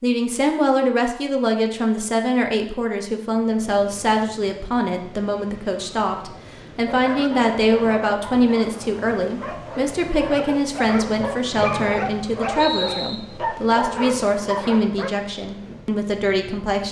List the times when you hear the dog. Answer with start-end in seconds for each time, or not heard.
6.8-15.1.